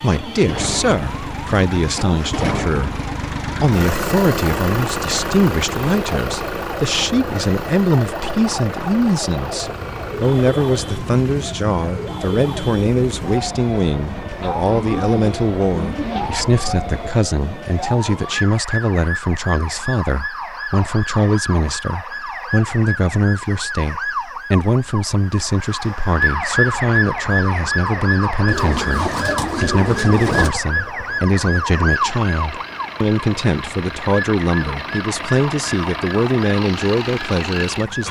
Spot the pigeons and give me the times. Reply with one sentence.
The pigeons can be heard from 14.4 to 16.4 s and from 28.4 to 30.6 s.